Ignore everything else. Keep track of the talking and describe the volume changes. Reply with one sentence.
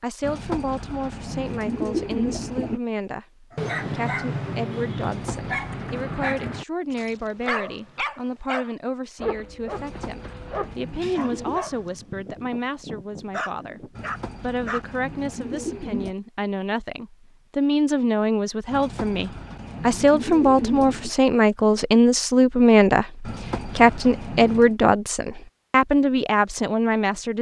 The volume of the talking goes up.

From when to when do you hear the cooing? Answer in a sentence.
You can hear the cooing from 0.2 to 2.8 s, from 5.0 to 6.5 s, from 9.8 to 11.6 s, from 13.9 to 16.1 s, from 18.7 to 21.1 s and from 23.2 to 24.8 s.